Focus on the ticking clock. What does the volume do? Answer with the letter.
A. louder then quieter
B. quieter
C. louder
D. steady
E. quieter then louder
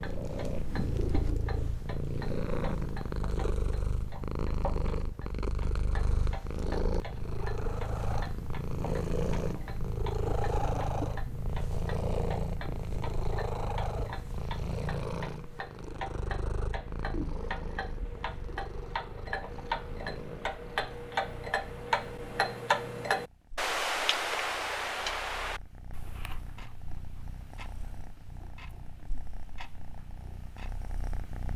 A.